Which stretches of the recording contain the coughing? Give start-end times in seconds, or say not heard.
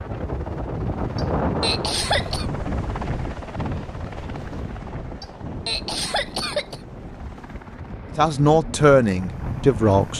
1.1-2.5, 5.2-6.8.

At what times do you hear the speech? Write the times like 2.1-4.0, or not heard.
8.2-10.1.